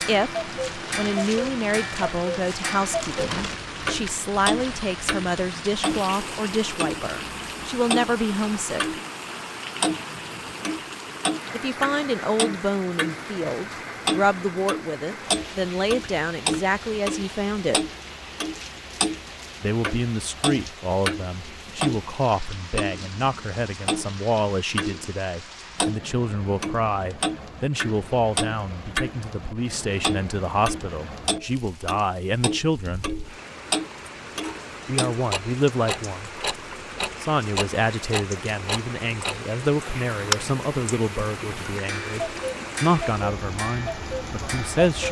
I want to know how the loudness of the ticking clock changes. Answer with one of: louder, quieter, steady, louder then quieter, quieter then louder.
steady.